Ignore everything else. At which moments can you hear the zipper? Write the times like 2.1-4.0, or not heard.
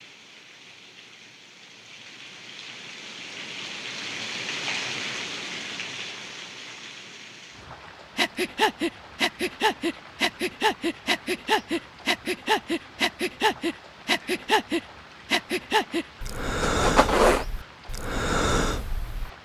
16.6-17.4.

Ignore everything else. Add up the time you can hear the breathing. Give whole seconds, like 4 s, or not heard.
11 s.